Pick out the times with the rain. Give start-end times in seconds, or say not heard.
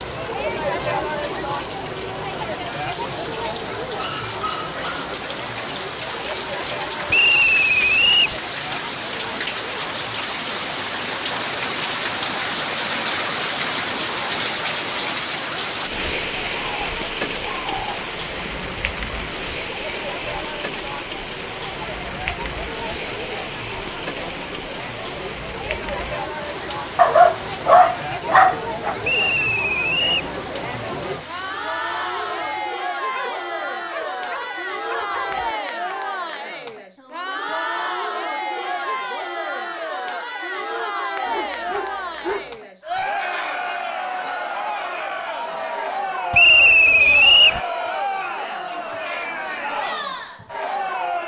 0.0-32.9.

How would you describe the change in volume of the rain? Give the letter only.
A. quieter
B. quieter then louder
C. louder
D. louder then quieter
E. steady
D.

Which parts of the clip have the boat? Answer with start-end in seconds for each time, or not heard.
not heard.